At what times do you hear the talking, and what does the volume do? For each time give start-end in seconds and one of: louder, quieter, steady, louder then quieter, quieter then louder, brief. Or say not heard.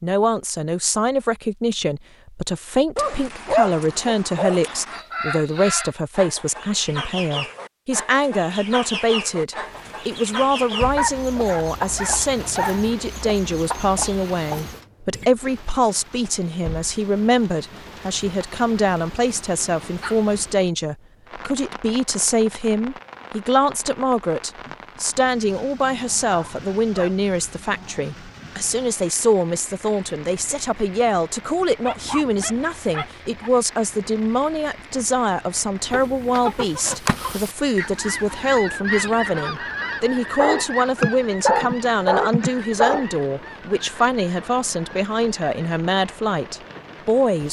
0.0-47.4 steady.